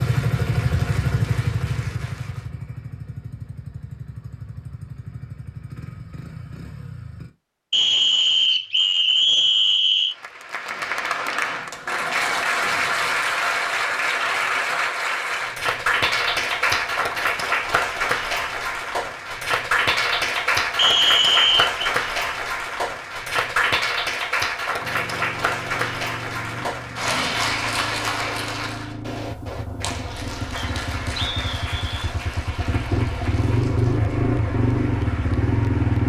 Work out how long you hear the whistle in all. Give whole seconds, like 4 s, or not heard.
5 s.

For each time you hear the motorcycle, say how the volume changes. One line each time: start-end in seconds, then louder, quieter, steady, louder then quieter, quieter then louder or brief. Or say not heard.
0.0-7.3 quieter
24.8-36.0 louder.